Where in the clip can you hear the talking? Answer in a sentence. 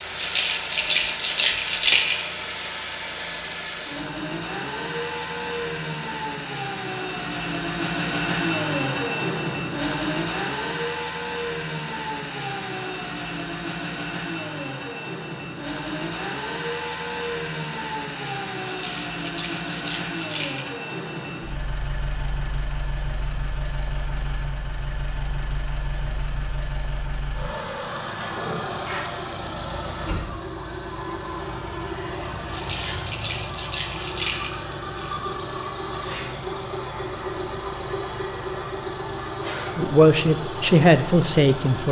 The talking can be heard from 39.8 to 41.8 s.